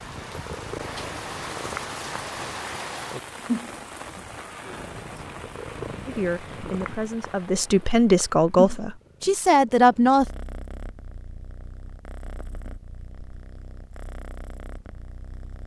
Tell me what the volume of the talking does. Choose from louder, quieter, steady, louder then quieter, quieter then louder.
louder.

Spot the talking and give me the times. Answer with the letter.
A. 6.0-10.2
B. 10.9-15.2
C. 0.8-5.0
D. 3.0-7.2
A.